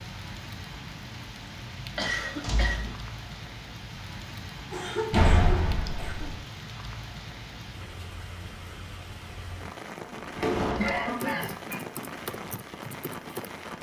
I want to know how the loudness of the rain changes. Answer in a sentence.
The volume of the rain stays about the same.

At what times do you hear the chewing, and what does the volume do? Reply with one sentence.
You can't hear the chewing here.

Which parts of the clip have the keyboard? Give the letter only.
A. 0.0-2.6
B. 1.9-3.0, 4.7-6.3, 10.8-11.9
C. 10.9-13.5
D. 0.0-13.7
C.